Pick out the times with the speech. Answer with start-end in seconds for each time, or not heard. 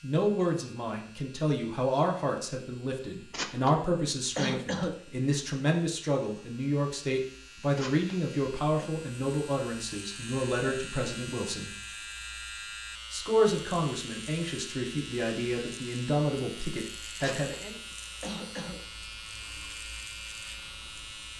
0.0-11.7, 13.1-17.8.